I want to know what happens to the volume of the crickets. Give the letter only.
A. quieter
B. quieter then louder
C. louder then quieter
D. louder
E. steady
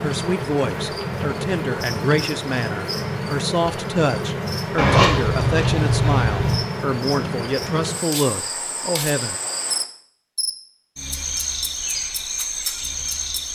E.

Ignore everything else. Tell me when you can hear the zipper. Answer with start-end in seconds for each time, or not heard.
4.8-6.6.